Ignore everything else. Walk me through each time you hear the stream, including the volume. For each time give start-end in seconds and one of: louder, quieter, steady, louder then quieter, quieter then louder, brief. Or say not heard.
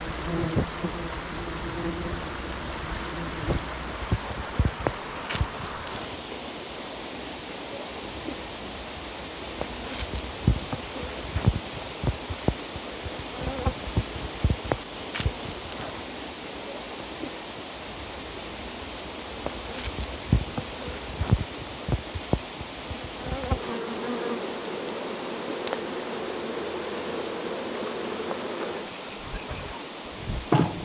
0.0-30.7 steady.